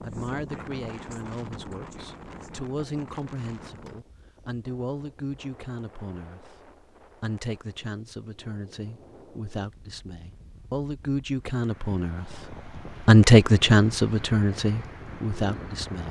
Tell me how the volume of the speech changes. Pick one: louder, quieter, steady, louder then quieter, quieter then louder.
louder.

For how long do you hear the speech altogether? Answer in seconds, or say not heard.
16 s.